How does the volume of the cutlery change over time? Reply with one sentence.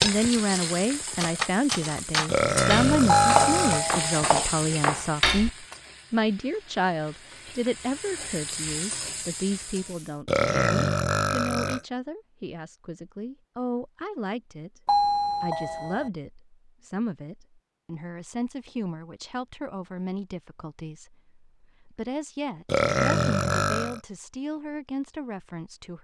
The volume of the cutlery goes up.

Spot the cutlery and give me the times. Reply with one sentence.
The cutlery can be heard from 0.0 to 5.5 s.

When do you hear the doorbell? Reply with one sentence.
The doorbell can be heard from 3.0 to 4.2 s and from 14.8 to 16.1 s.